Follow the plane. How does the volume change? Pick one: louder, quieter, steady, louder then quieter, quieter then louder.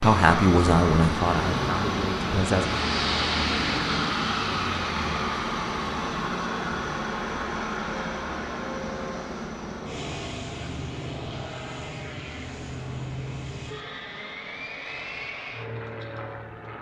quieter.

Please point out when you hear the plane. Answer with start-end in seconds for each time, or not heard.
0.0-16.7.